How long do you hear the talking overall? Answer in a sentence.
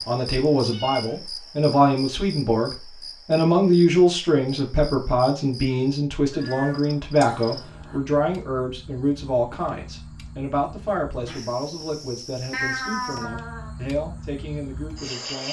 The talking can be heard for 15 seconds in total.